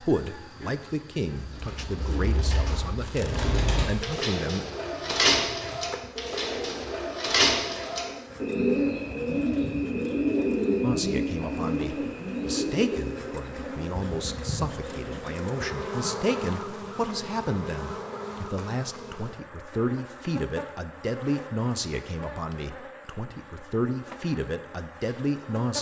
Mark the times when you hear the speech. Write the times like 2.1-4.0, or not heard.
0.0-4.7, 10.8-25.7.